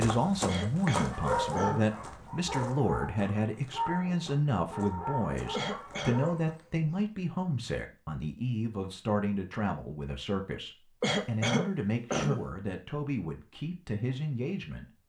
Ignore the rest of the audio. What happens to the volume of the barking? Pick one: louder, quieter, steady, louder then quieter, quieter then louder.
quieter.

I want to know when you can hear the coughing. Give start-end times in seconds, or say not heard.
0.5-1.9, 5.5-6.2, 11.0-12.4.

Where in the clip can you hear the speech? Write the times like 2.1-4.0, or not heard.
0.0-14.9.